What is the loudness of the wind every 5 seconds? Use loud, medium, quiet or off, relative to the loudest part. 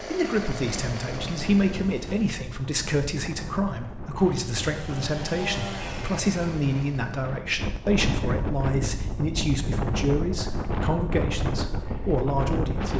medium, loud, loud.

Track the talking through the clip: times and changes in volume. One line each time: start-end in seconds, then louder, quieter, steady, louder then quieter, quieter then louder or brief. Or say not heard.
0.0-12.9 steady.